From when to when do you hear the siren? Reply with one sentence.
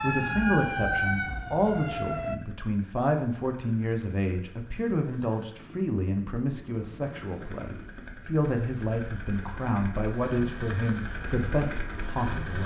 You can hear the siren from 0.0 to 2.4 s.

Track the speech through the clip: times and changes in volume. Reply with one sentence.
The speech can be heard from 0.0 to 12.6 s, at a steady volume.